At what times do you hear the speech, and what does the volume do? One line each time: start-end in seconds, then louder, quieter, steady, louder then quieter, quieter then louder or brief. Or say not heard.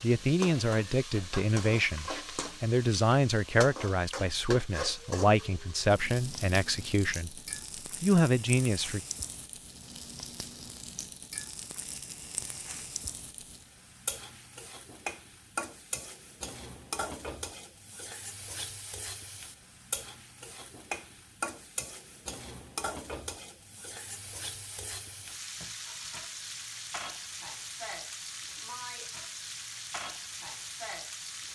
0.0-7.3 steady
8.0-9.0 brief.